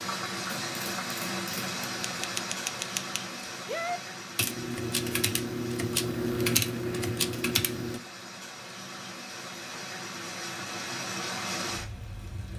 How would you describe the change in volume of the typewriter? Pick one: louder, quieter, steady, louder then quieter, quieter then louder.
louder.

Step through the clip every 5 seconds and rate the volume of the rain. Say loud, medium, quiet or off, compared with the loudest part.
loud, medium, loud.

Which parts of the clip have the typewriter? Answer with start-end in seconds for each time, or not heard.
0.5-8.0.